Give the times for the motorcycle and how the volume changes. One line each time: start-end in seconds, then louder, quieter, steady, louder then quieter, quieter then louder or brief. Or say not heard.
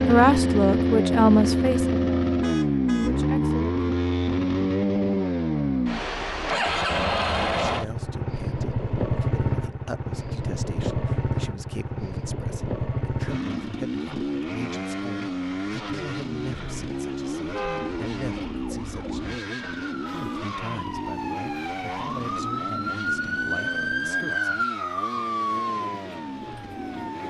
0.0-27.2 quieter.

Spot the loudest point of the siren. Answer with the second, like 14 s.
24 s.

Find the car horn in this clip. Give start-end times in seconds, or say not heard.
2.4-3.1, 17.4-17.9.